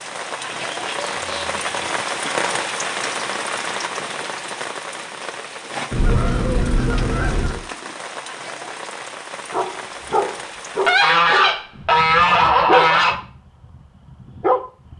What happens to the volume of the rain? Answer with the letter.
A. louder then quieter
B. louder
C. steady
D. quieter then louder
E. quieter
E.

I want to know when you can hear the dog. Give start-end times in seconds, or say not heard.
9.5-14.9.